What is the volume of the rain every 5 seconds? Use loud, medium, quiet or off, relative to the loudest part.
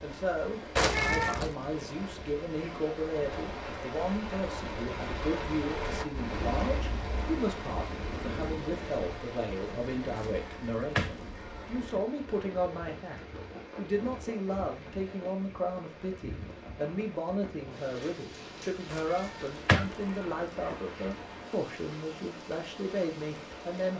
loud, loud, medium, medium, medium.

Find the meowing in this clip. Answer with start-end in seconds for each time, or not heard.
0.8-1.6, 10.2-12.0, 18.9-20.8.